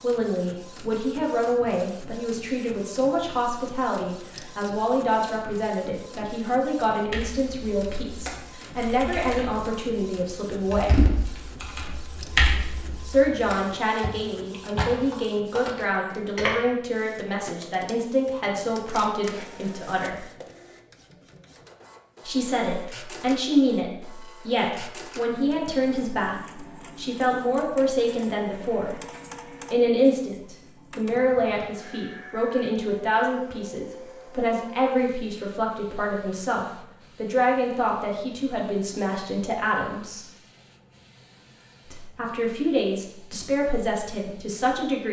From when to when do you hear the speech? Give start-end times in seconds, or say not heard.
0.0-11.1, 13.1-20.2, 22.2-28.9, 29.7-40.2, 41.9-45.0.